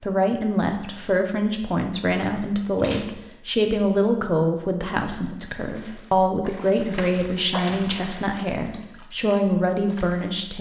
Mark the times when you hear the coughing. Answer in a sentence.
The coughing can't be heard in this clip.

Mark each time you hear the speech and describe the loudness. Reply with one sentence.
The speech can be heard from 0.0 to 10.5 s, at a steady volume.